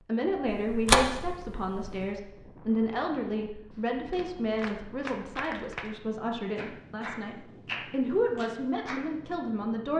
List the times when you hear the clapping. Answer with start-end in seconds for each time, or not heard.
4.1-6.0, 6.5-9.1.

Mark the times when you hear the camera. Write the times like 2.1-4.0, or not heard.
0.5-2.1.